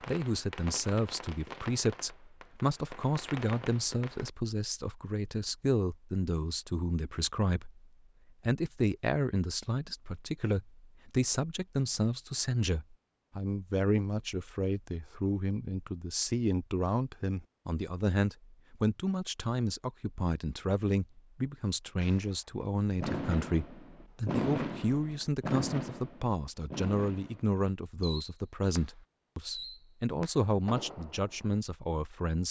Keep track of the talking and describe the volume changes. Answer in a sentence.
The volume of the talking stays about the same.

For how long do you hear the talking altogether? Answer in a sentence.
The talking can be heard for 32 seconds in total.